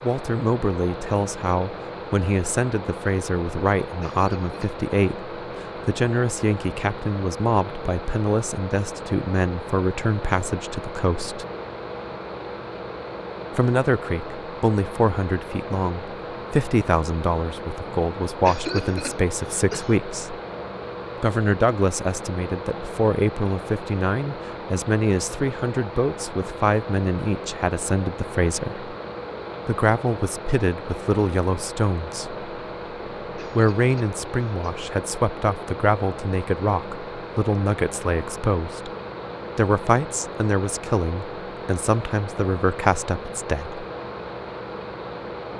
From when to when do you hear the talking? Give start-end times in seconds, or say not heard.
0.0-11.4, 13.6-20.4, 21.2-28.9, 29.6-32.4, 33.4-38.9, 39.5-43.8.